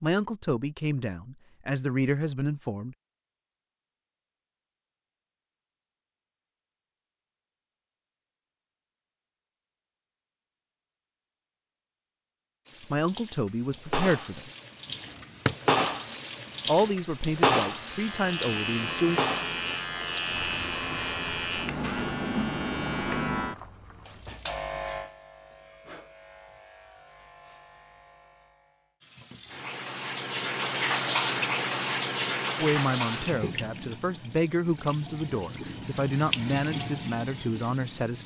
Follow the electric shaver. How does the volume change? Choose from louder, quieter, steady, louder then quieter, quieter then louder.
quieter.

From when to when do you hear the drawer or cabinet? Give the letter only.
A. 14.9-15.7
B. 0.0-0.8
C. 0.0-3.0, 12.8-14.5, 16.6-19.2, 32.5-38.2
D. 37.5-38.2
A.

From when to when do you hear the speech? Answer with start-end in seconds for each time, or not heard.
0.0-3.0, 12.8-14.5, 16.6-19.2, 32.5-38.2.